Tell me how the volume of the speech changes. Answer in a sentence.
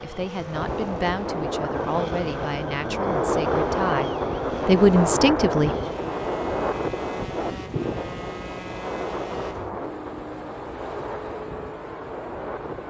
The volume of the speech goes up.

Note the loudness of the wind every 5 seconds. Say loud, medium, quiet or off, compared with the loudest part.
loud, loud, medium.